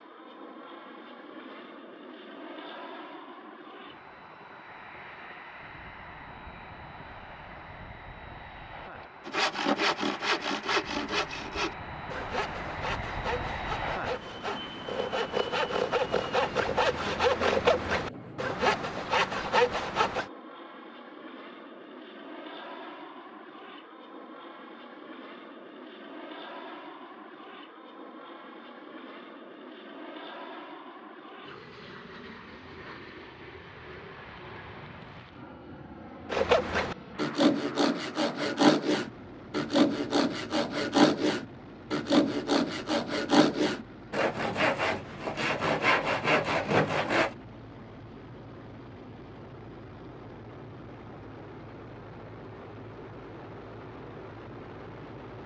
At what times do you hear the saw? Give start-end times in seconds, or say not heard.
9.2-20.3, 36.3-47.4.